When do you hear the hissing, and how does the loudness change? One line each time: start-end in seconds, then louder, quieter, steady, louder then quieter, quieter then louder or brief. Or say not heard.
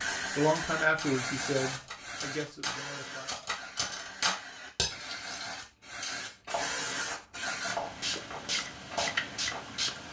0.0-10.0 quieter then louder.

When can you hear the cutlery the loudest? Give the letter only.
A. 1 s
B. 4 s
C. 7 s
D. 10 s
B.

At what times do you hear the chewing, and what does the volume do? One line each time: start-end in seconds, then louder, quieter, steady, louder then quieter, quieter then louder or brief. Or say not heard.
not heard.